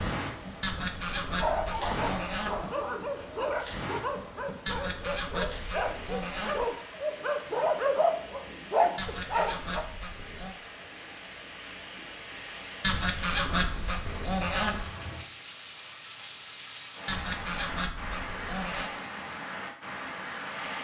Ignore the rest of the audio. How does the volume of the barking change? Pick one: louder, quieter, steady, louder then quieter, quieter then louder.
louder.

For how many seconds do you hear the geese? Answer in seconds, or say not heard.
10 s.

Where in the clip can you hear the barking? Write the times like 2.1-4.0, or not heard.
1.4-9.8.